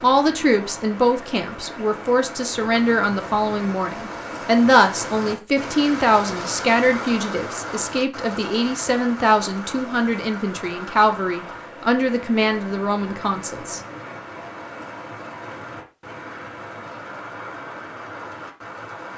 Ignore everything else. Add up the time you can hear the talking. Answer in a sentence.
You can hear the talking for 14 seconds altogether.